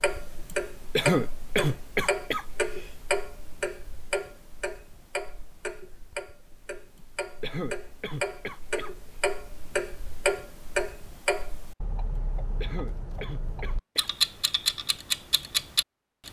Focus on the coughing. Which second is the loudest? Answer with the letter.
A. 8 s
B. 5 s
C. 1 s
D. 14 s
C.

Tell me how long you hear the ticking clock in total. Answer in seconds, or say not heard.
16 s.